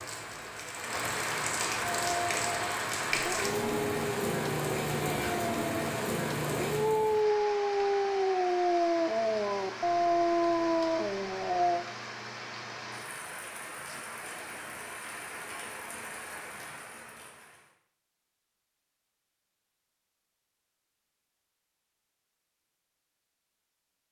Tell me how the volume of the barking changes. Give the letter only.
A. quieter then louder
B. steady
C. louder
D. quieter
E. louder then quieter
C.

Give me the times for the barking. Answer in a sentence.
The barking can be heard from 1.8 to 11.8 s.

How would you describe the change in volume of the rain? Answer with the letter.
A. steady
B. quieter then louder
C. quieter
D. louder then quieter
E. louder
C.